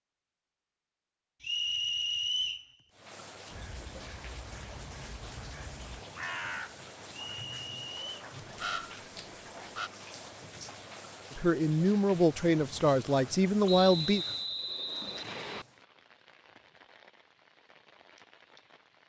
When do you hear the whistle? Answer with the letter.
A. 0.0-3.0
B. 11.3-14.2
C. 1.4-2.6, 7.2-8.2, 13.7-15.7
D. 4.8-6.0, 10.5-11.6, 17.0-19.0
C.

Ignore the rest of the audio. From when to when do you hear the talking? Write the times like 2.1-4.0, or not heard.
11.3-14.2.